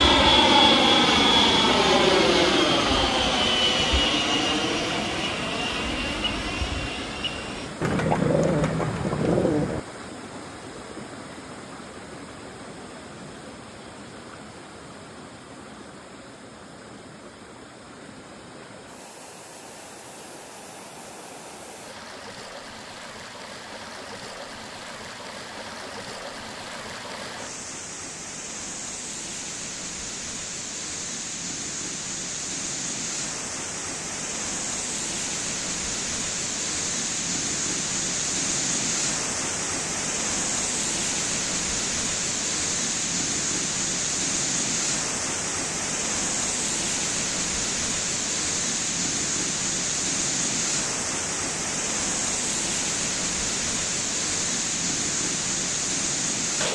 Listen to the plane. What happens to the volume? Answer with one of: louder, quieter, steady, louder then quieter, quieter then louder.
quieter.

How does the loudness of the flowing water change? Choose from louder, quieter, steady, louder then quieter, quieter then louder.
quieter then louder.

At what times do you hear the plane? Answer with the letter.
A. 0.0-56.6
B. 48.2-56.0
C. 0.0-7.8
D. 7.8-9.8
C.